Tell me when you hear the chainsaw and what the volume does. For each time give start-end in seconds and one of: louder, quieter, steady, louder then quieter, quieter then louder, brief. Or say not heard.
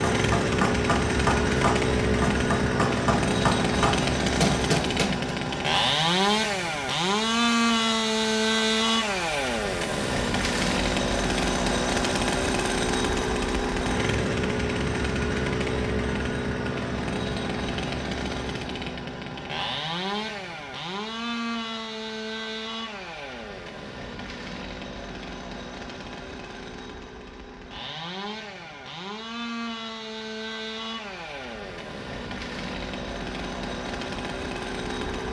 0.0-35.2 quieter.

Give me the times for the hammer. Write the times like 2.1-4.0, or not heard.
0.0-5.3.